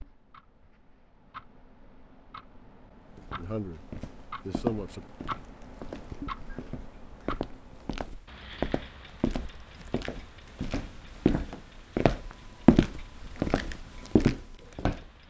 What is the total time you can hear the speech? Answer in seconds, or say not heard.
2 s.